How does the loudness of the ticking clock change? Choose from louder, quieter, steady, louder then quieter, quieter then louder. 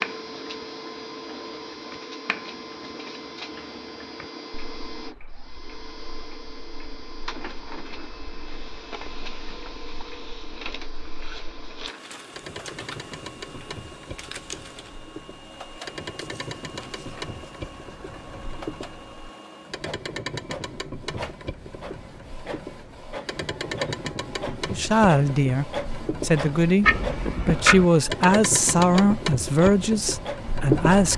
louder.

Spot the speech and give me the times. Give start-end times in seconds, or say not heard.
24.7-31.1.